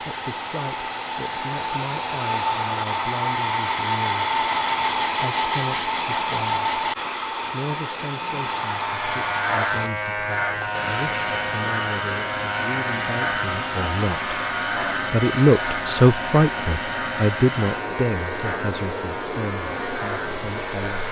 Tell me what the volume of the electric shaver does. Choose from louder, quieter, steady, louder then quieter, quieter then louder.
quieter.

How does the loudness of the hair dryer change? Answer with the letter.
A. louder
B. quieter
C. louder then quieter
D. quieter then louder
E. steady
B.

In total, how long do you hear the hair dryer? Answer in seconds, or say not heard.
21 s.